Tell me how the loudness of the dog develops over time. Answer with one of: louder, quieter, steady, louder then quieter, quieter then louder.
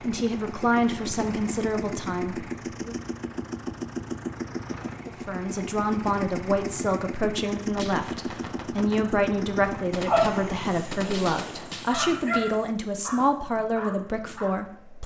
louder then quieter.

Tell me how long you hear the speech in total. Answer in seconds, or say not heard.
13 s.